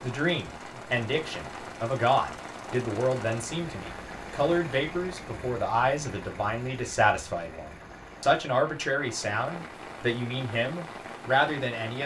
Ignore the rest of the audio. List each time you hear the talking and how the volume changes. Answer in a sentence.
You can hear the talking from 0.0 to 12.0 s, at a steady volume.